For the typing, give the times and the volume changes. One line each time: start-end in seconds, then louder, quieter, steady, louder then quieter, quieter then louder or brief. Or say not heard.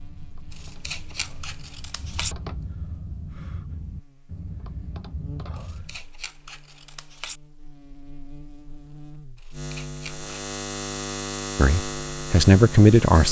0.0-6.0 louder.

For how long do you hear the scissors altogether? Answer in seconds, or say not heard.
5 s.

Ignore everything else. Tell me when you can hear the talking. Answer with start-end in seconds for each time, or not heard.
11.6-13.2.